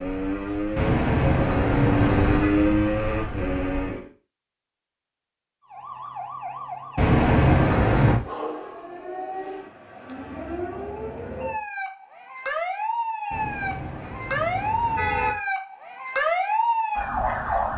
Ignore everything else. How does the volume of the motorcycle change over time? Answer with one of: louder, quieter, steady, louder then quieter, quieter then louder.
louder then quieter.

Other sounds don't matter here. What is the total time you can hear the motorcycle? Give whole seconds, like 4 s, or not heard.
4 s.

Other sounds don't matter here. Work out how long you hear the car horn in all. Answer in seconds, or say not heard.
5 s.